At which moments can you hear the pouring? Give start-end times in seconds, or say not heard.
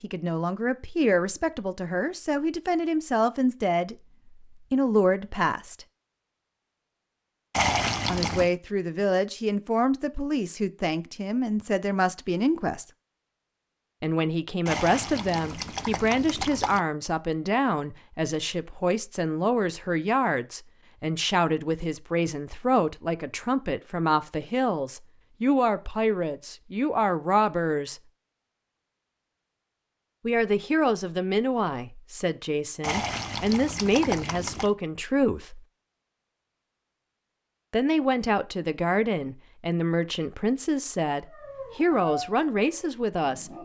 7.5-8.5, 14.7-16.8, 32.8-34.7.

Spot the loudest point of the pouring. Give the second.
8 s.